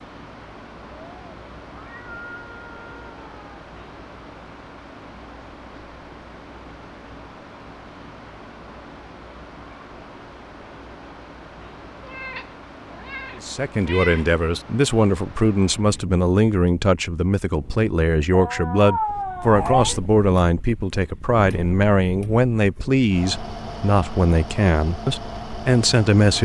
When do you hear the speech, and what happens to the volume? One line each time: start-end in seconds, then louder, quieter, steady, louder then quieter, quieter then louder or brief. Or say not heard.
13.3-26.3 steady.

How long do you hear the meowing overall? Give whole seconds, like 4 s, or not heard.
7 s.